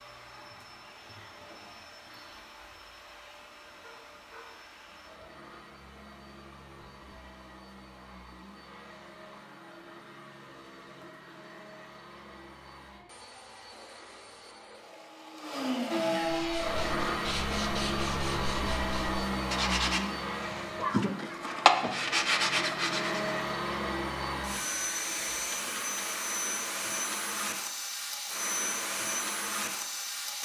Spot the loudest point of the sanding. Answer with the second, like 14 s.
22 s.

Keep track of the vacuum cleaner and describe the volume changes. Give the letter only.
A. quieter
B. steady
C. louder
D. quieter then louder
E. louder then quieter
C.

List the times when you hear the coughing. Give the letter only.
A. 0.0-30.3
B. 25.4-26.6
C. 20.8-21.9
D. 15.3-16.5
C.